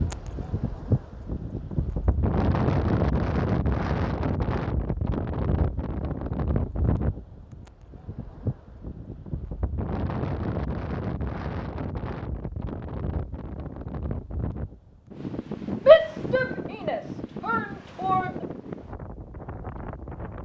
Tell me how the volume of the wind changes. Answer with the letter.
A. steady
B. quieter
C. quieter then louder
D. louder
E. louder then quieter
B.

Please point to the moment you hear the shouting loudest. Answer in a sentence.
The volume of the shouting peaks at 16 seconds.